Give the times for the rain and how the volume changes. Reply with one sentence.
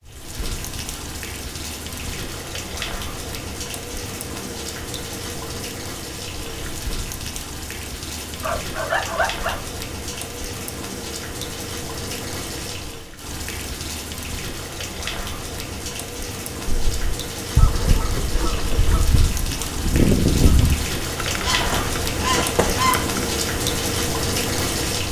You can hear the rain from 0.0 to 25.0 s, getting louder.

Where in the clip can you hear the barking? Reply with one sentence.
You can hear the barking from 8.4 to 9.7 s.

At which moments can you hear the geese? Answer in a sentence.
The geese can be heard from 16.7 to 23.3 s.